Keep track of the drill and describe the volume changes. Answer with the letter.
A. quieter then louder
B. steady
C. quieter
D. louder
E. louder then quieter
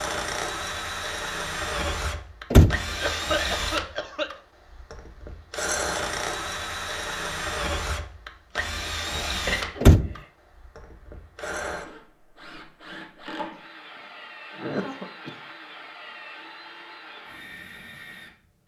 C.